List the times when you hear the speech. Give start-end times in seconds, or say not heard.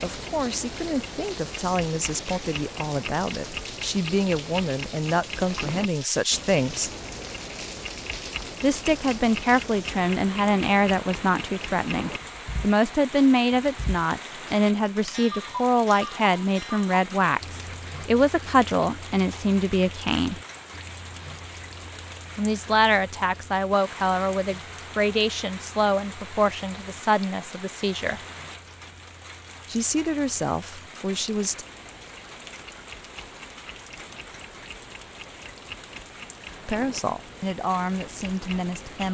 0.0-6.9, 8.6-20.4, 22.4-28.2, 29.6-31.6, 36.6-39.0.